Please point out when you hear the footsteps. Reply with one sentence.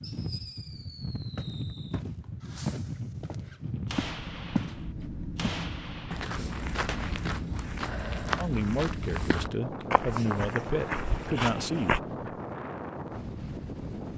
You can hear the footsteps from 1.4 to 12.0 s.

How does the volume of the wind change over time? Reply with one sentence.
The loudness of the wind stays about the same.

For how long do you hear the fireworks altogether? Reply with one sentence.
You can hear the fireworks for 7 seconds altogether.